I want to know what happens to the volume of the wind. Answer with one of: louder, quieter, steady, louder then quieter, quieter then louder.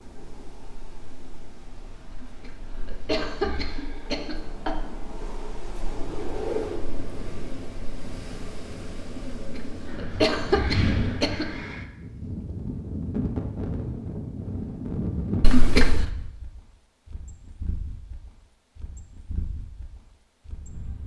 louder then quieter.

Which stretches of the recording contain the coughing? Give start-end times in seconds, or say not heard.
2.1-4.8, 9.3-11.6, 15.4-16.1.